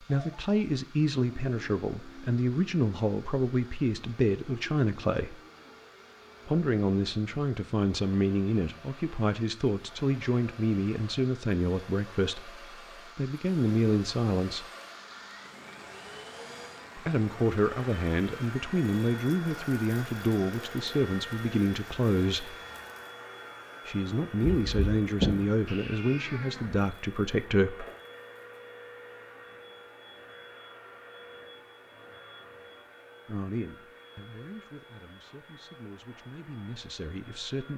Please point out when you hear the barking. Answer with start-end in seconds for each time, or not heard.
not heard.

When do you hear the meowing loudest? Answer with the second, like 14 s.
25 s.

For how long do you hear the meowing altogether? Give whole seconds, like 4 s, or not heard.
2 s.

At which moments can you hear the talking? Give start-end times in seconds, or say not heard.
0.0-5.4, 6.5-14.7, 16.9-22.6, 23.9-27.9, 33.2-37.7.